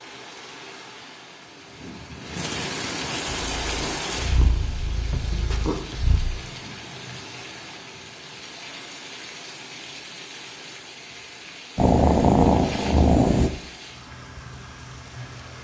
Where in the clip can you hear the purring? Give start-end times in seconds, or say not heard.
3.2-6.2, 11.8-13.5.